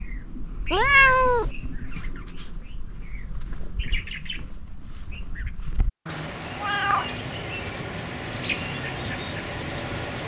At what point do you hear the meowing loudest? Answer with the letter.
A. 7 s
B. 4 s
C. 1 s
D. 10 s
C.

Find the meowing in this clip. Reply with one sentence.
The meowing can be heard from 0.7 to 1.5 s and from 6.0 to 7.2 s.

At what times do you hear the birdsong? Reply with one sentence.
You can hear the birdsong from 0.0 to 10.2 s.